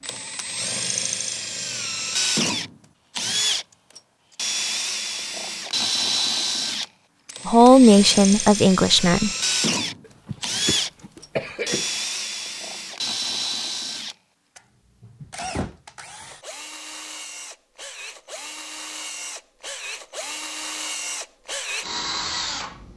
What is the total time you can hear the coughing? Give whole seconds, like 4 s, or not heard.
2 s.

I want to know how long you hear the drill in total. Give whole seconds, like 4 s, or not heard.
23 s.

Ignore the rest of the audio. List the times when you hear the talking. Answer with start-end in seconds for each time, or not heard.
7.5-9.3.